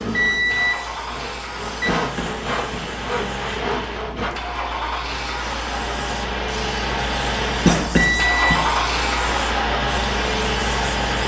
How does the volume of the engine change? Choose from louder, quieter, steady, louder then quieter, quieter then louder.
louder.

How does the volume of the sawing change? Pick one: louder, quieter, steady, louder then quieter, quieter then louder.
louder.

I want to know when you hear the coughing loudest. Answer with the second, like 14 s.
8 s.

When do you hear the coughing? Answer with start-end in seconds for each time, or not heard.
1.9-2.9, 7.7-8.7.